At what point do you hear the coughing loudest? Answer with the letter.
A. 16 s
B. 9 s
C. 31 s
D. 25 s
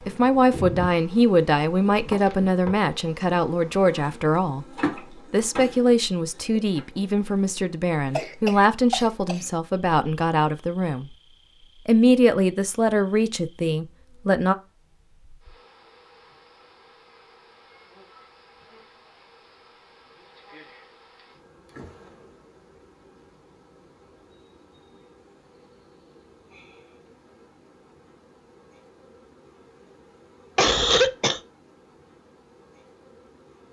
C.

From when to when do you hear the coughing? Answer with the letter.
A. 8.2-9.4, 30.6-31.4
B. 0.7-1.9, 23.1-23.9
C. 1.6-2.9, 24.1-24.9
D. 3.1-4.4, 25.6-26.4
A.